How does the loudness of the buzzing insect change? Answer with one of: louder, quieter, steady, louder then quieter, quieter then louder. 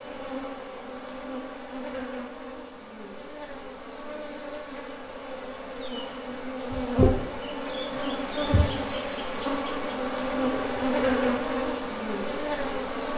louder.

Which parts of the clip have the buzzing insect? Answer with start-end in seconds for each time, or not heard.
0.0-13.1.